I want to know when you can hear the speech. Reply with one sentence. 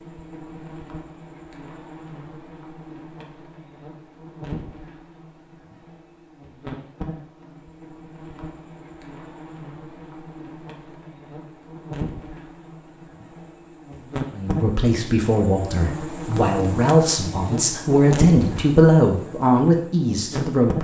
The speech can be heard from 14.3 to 20.7 s.